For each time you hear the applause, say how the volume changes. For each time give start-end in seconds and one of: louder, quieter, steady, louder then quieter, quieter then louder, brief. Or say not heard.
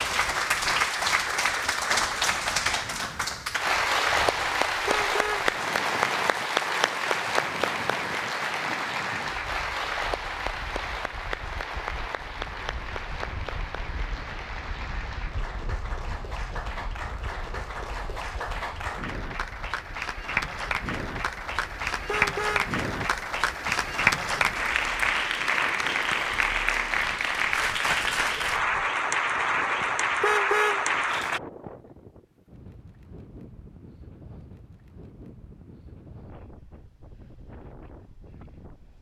0.0-31.4 quieter then louder.